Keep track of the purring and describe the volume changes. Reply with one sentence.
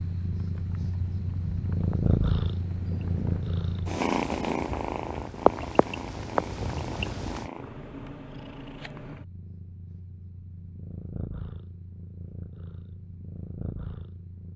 The volume of the purring goes down.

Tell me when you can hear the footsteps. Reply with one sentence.
The footsteps can't be heard in this clip.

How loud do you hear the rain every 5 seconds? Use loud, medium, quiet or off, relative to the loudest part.
quiet, loud, off.